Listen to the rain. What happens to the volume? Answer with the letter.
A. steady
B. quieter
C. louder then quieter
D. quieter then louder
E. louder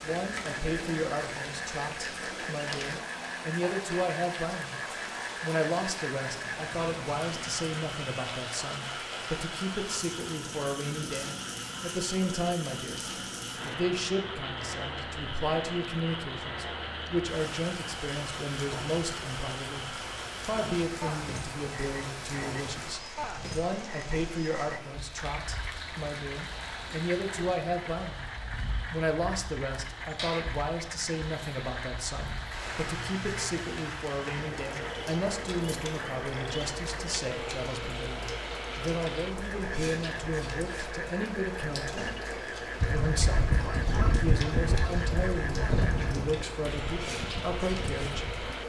A.